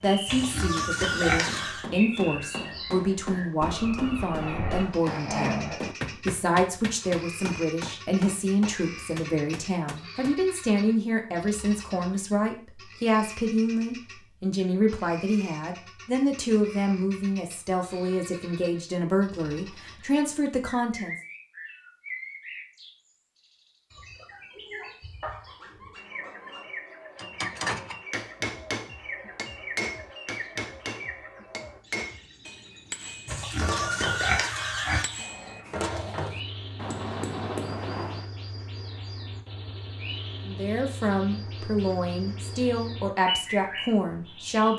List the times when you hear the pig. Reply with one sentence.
You can hear the pig from 0.2 to 1.9 s and from 33.2 to 35.0 s.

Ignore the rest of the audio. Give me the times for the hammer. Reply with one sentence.
You can hear the hammer from 0.0 to 10.4 s and from 27.1 to 38.2 s.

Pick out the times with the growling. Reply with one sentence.
You can hear the growling from 4.2 to 5.8 s, from 25.2 to 26.7 s and from 35.0 to 36.1 s.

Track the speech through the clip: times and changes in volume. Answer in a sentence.
You can hear the speech from 0.0 to 21.1 s, at a steady volume; and from 40.5 to 44.7 s, at a steady volume.